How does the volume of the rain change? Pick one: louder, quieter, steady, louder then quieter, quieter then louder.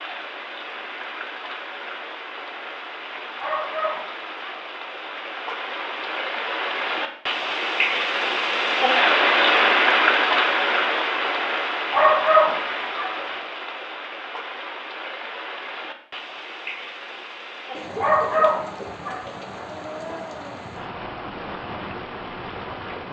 louder then quieter.